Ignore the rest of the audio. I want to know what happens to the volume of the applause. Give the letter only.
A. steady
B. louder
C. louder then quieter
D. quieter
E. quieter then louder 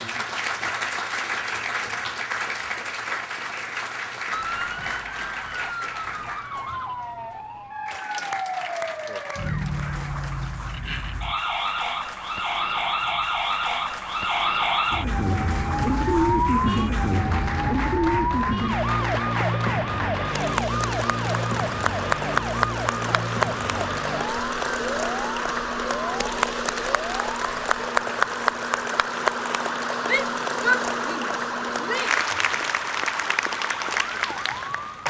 E.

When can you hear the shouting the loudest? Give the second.
31 s.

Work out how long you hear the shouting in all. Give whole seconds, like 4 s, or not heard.
2 s.